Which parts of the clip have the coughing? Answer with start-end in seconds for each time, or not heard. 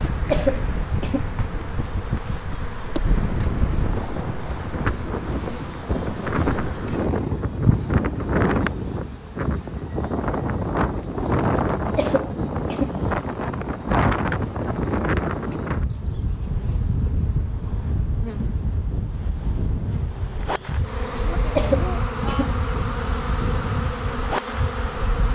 0.3-1.3, 11.9-12.9, 21.6-22.6.